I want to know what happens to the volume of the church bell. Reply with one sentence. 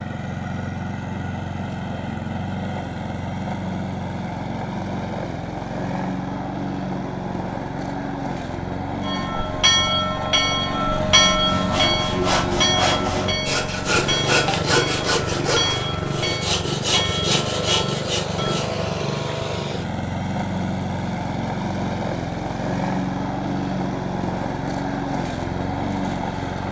The volume of the church bell goes down.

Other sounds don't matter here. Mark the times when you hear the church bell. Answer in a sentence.
You can hear the church bell from 9.0 to 18.6 s.